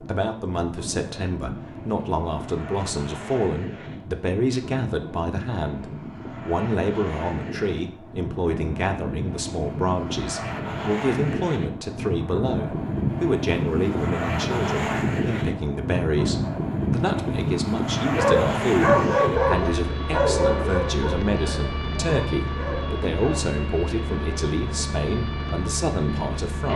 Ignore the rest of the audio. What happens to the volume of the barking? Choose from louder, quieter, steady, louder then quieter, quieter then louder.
quieter.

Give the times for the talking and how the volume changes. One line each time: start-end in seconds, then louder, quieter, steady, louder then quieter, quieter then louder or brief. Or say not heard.
0.0-26.7 steady.